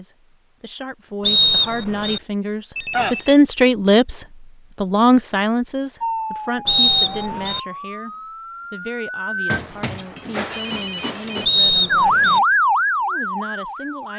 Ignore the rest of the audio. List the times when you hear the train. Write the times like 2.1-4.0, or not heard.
not heard.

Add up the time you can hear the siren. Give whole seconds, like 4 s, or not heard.
6 s.